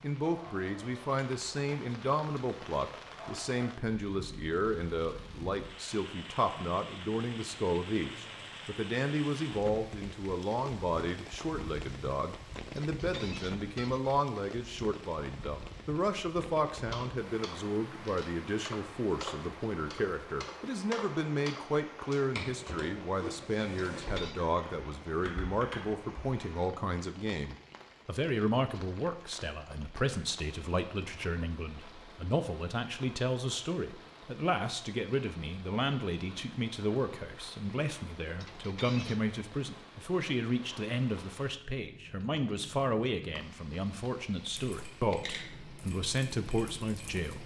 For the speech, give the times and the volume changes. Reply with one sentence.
You can hear the speech from 0.0 to 47.4 s, at a steady volume.